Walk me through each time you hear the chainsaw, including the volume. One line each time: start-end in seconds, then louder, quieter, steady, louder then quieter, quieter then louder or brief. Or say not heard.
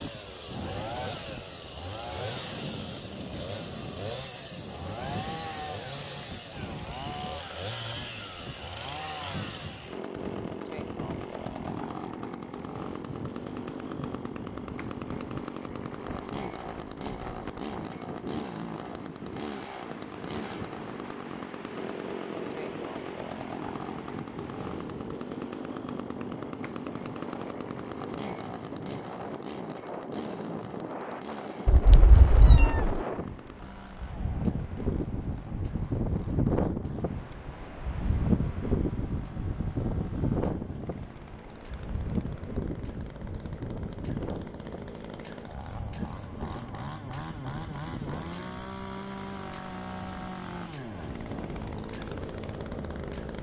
0.0-53.3 quieter then louder.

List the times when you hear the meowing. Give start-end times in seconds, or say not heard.
31.6-33.0.